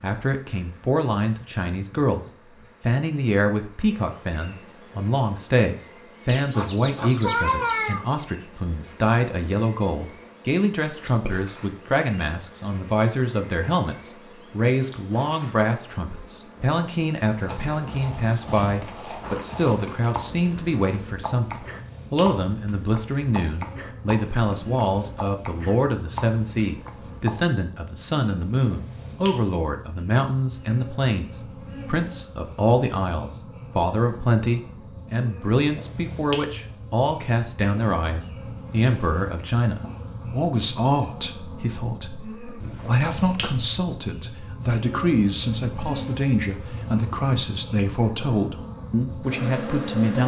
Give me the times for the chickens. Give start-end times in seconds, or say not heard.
6.2-8.1.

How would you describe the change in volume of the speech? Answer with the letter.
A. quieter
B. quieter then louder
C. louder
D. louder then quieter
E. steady
E.